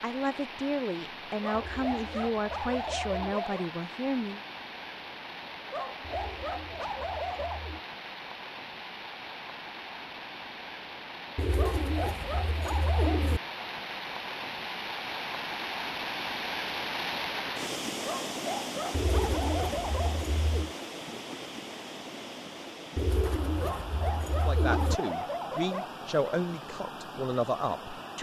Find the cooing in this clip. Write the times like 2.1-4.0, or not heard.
1.5-3.2, 6.0-7.8, 11.3-13.4, 18.9-20.8, 22.9-25.0.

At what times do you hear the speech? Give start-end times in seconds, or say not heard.
0.0-4.4, 24.4-28.1.